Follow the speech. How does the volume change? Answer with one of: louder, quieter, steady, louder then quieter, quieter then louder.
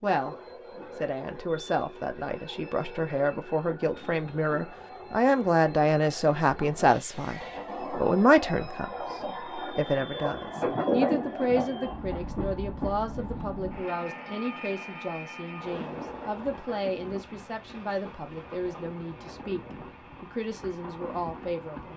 louder then quieter.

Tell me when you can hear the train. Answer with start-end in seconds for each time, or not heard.
0.0-21.9.